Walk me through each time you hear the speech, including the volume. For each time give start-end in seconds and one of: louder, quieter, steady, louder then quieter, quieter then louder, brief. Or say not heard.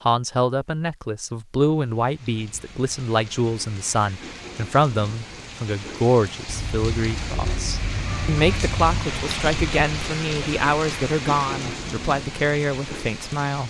0.1-13.6 steady.